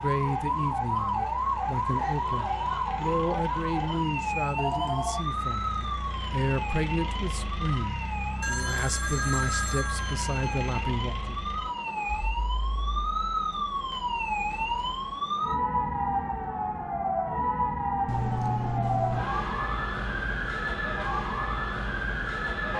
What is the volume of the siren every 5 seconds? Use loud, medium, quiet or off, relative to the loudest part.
loud, medium, loud, loud, loud.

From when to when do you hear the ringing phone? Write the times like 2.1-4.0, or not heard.
4.5-5.2, 8.4-10.8, 18.1-19.3.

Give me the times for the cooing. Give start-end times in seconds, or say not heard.
not heard.